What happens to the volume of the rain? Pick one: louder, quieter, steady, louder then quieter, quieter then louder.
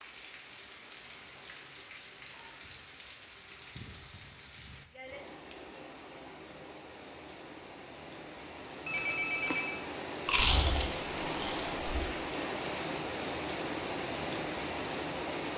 louder.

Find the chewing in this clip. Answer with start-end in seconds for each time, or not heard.
10.2-11.8.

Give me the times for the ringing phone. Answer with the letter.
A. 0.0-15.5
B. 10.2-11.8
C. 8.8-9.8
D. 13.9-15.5
C.